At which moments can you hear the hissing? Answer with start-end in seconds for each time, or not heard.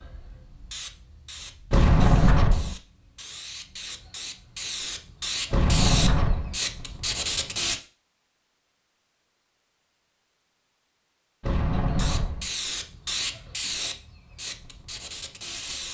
0.0-7.8, 11.8-15.8.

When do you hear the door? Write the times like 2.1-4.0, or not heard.
1.7-2.8, 5.5-6.5, 11.4-12.5.